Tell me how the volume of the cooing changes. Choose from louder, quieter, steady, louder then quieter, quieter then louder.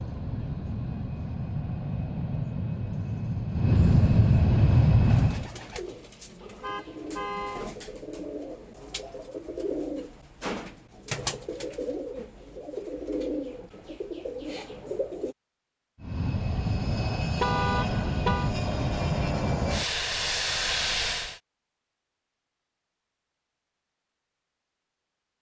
louder.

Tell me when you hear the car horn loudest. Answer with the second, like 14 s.
18 s.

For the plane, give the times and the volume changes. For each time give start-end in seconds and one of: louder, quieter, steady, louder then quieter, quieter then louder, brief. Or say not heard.
0.0-5.5 louder
16.0-21.4 steady.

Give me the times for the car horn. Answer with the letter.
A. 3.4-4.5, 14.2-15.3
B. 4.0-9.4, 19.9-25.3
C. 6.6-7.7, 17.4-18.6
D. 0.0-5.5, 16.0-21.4
C.